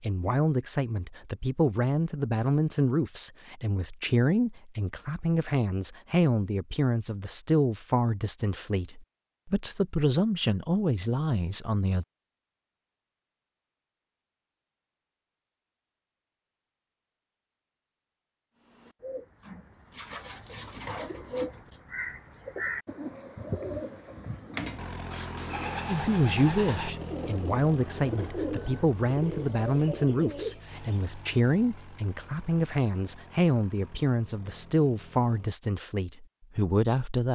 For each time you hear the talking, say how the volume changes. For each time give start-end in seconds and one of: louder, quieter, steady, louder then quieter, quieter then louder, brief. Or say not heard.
0.0-12.1 steady
25.9-37.3 steady.